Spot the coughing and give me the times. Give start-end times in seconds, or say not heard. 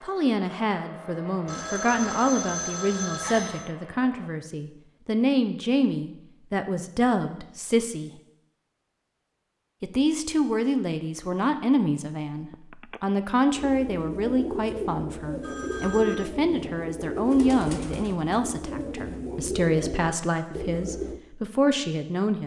not heard.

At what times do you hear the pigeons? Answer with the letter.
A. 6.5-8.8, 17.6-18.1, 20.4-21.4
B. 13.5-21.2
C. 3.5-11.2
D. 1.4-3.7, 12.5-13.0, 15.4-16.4
B.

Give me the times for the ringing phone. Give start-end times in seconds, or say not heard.
1.4-3.7, 12.5-13.0, 15.4-16.4.